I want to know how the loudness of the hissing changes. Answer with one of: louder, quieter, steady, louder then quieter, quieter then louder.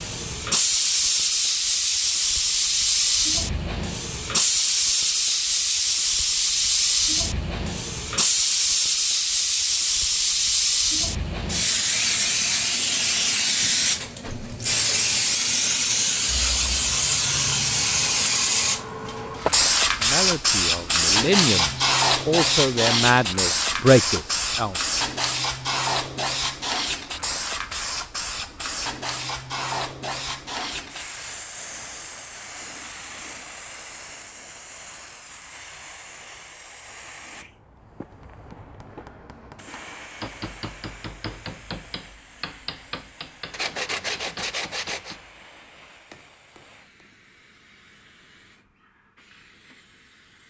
quieter.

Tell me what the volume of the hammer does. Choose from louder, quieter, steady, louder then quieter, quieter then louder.
louder then quieter.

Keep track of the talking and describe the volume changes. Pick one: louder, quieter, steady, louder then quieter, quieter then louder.
louder.